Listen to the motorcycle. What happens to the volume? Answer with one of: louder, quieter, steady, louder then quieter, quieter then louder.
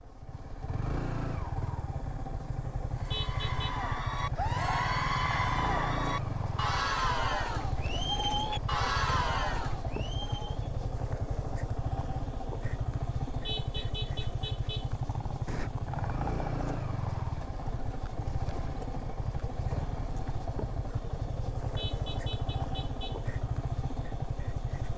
steady.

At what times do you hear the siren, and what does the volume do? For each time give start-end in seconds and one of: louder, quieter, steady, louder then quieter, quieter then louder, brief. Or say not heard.
not heard.